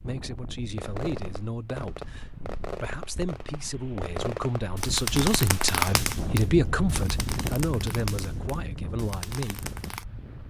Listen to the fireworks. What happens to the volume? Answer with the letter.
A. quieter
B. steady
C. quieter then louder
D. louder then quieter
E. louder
D.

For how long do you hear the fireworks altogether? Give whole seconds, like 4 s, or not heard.
9 s.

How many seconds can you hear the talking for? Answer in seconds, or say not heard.
10 s.